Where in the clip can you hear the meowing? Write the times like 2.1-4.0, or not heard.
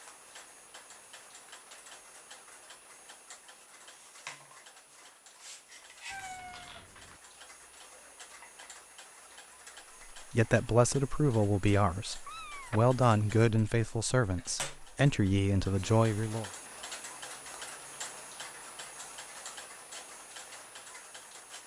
6.1-7.2, 12.2-12.8.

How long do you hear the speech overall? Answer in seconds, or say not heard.
6 s.